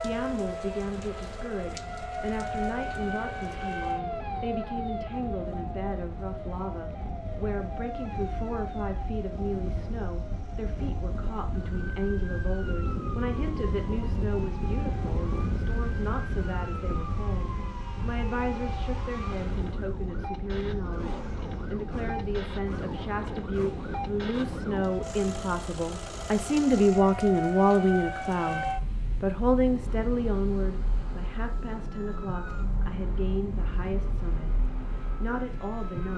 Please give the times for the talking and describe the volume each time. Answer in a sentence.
The talking can be heard from 0.0 to 34.5 s, getting louder; and briefly from 35.1 to 36.1 s.